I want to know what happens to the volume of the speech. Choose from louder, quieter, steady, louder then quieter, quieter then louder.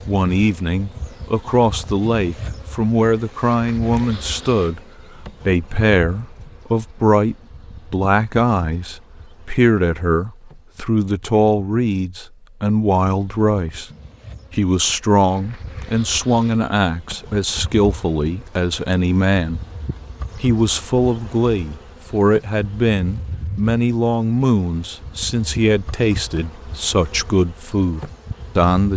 steady.